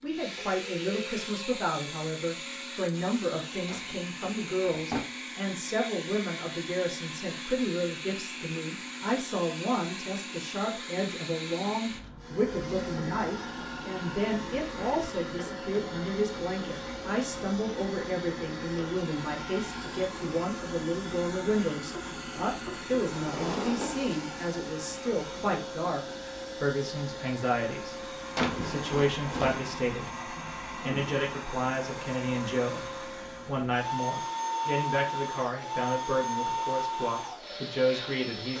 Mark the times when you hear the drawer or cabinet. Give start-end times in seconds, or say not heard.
3.6-5.0, 23.1-24.1, 28.4-29.6.